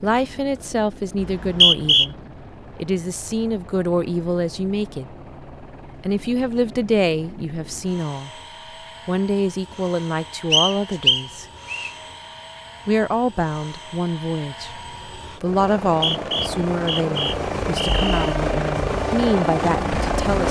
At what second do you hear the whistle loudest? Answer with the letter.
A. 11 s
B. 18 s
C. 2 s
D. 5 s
C.